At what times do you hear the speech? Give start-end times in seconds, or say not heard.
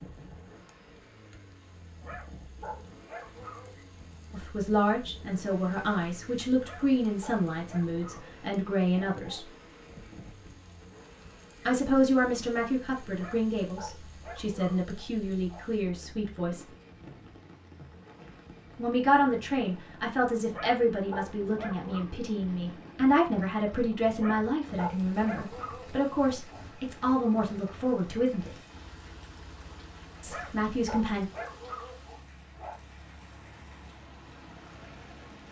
4.3-9.5, 11.7-16.6, 18.8-28.5, 30.2-31.2.